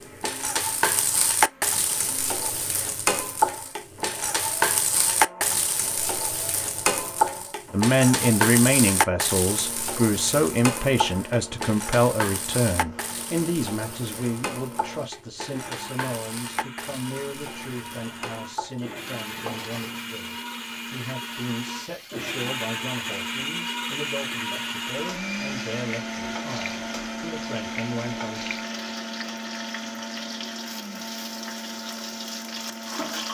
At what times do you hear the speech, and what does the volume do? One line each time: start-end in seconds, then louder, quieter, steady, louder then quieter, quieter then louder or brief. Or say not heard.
7.7-28.6 quieter.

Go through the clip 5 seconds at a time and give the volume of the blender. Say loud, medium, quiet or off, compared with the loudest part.
quiet, medium, medium, medium, loud, loud, medium.